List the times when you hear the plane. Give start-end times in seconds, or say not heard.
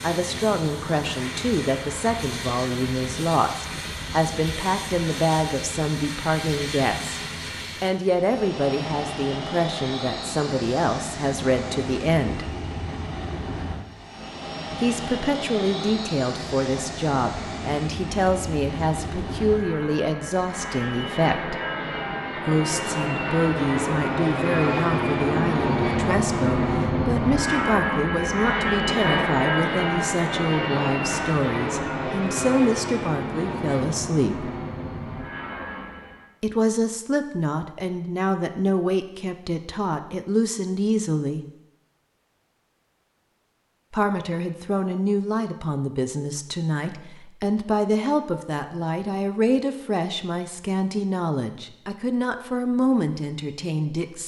0.0-36.3.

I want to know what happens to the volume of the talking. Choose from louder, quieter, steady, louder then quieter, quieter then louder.
steady.